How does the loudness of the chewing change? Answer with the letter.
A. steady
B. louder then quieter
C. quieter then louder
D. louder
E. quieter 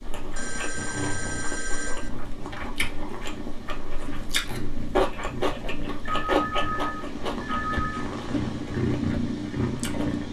B.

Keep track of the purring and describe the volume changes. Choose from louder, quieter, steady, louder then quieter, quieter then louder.
louder.